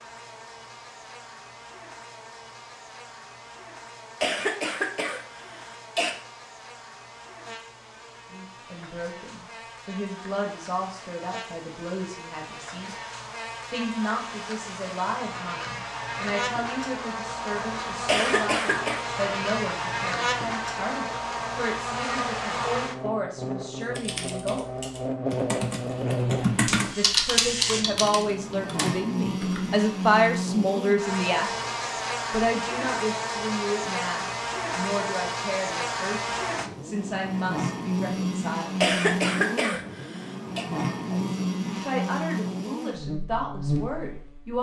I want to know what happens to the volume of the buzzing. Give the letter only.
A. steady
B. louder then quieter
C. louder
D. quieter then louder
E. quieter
C.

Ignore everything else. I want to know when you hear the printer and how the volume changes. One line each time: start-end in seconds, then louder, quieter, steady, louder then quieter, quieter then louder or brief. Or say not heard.
not heard.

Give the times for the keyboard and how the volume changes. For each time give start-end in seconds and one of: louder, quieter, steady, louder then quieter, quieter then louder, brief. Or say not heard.
23.9-29.8 louder then quieter.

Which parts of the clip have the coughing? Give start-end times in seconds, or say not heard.
4.2-6.1, 18.1-19.1, 38.8-40.6.